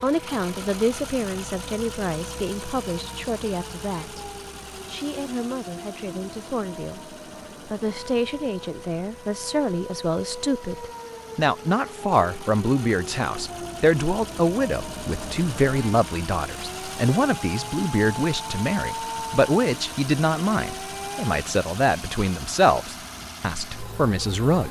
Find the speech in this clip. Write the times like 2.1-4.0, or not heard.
0.0-24.6.